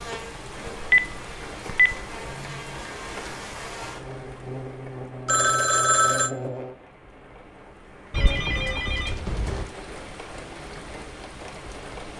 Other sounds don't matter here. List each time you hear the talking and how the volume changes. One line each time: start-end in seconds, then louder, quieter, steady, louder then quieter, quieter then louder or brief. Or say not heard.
not heard.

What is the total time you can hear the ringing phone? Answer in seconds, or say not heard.
4 s.